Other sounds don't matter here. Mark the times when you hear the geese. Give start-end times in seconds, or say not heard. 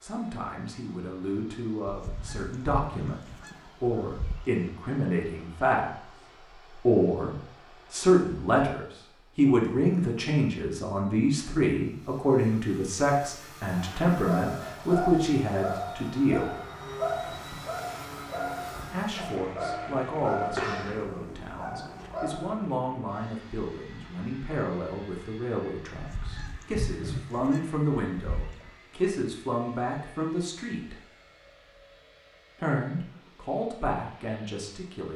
1.9-4.5, 25.9-28.7.